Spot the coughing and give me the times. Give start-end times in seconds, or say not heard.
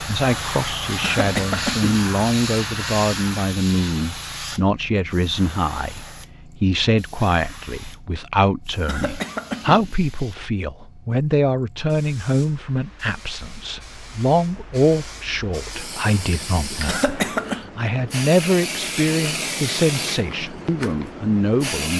1.0-1.9, 8.8-9.9, 16.9-17.6.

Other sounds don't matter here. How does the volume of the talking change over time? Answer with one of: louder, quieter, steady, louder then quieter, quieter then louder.
steady.